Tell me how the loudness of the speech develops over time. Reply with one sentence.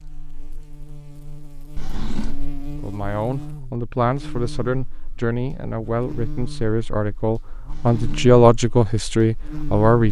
The volume of the speech goes up.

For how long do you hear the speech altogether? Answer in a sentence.
You can hear the speech for 7 seconds altogether.